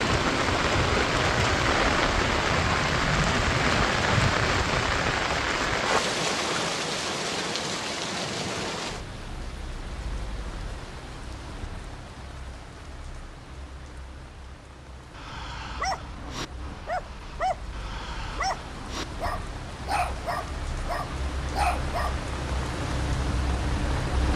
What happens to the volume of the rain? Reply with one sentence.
The volume of the rain goes down, then up.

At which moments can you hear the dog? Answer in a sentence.
The dog can be heard from 15.1 to 22.1 s.